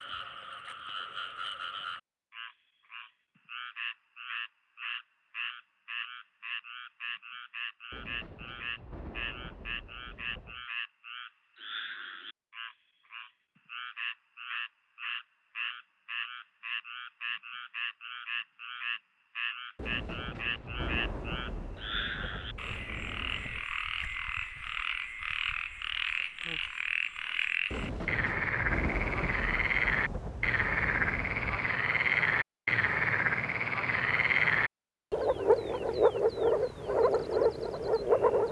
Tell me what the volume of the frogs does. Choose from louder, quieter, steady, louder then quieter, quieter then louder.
louder.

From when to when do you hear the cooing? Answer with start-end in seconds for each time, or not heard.
not heard.